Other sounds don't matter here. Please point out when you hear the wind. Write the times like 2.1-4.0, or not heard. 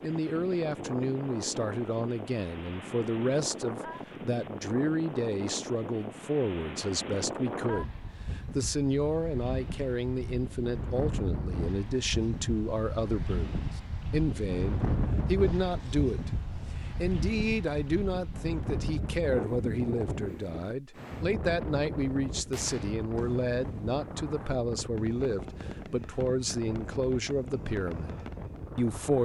0.0-29.2.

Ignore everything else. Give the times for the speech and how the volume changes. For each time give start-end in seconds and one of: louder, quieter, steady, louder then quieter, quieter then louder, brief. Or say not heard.
0.0-29.2 steady.